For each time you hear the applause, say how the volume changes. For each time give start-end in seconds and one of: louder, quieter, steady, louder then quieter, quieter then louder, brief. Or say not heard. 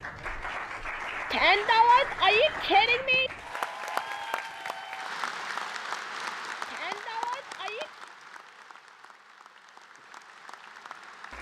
0.0-11.3 quieter.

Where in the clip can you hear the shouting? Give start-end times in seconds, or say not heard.
1.3-3.3, 6.7-8.1.